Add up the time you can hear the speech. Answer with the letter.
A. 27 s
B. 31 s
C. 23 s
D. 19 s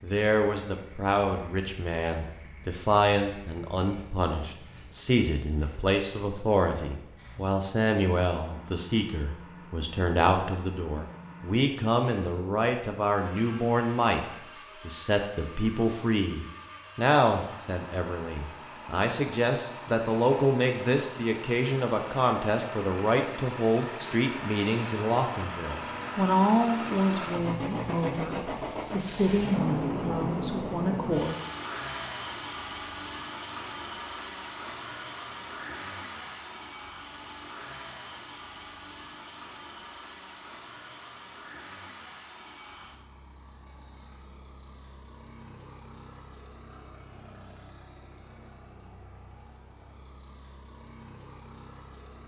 B.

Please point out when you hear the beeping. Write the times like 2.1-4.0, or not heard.
not heard.